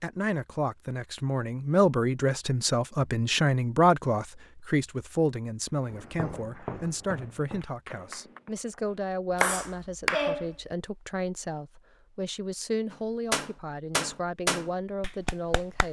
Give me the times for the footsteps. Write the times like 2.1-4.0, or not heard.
5.8-8.6.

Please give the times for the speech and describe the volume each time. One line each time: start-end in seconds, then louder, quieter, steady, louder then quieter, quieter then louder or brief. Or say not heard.
0.0-15.8 quieter.